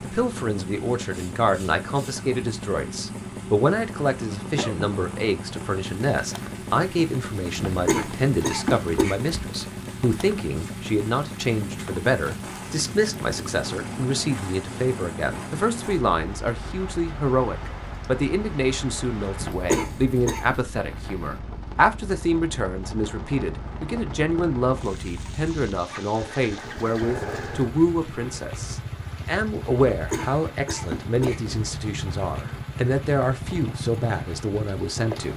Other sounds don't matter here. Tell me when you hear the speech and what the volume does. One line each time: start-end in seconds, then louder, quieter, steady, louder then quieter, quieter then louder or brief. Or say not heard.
0.0-35.3 steady.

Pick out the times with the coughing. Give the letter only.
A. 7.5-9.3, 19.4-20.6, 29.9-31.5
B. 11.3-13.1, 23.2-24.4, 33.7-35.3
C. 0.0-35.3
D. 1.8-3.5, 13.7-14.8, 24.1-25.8
A.